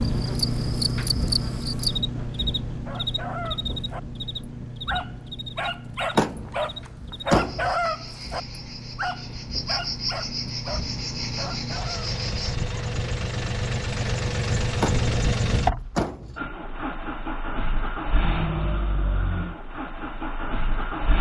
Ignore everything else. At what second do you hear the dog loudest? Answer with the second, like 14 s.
8 s.